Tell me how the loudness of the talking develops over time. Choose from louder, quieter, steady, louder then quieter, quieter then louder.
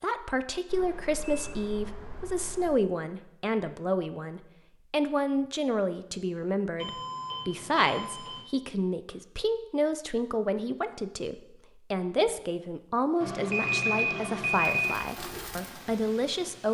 steady.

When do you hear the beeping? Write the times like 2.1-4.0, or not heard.
0.7-2.7, 6.8-8.4, 13.2-14.9.